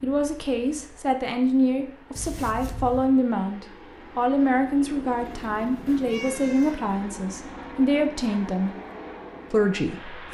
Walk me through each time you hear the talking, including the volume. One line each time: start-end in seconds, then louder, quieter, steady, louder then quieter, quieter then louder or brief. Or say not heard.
0.0-8.8 steady
9.5-10.3 brief.